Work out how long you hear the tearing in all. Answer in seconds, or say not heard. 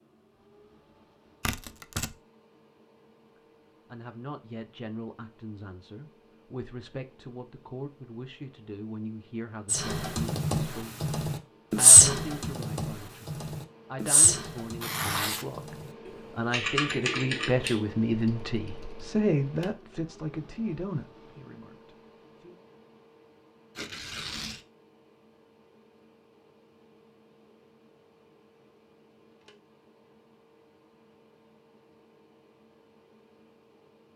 2 s.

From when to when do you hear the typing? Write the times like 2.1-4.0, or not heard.
9.7-19.1.